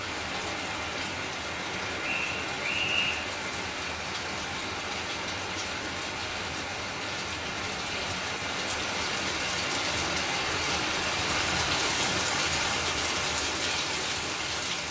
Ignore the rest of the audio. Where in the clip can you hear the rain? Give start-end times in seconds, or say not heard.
0.0-14.8.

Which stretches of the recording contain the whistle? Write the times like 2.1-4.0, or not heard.
2.0-3.2.